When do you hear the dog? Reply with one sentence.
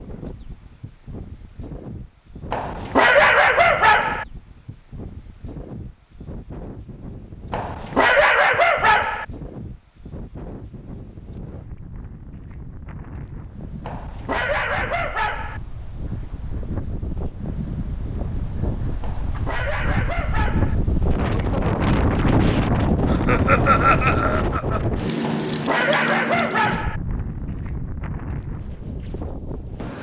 The dog can be heard from 2.5 to 4.2 s, from 7.5 to 9.2 s, from 13.8 to 15.6 s, from 19.0 to 20.8 s and from 25.2 to 27.0 s.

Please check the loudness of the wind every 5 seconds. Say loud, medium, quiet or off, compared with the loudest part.
quiet, quiet, quiet, medium, loud, medium.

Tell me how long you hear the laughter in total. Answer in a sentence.
You can hear the laughter for 2 seconds altogether.